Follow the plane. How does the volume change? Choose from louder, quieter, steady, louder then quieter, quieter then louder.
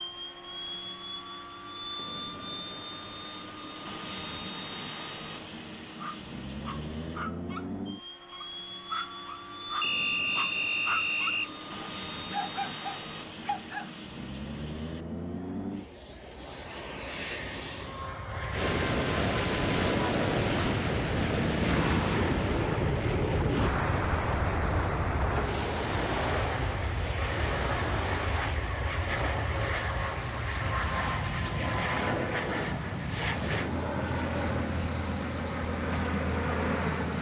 louder.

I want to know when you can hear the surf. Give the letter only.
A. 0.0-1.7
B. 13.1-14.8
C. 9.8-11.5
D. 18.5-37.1
D.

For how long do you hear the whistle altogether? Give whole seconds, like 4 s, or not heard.
2 s.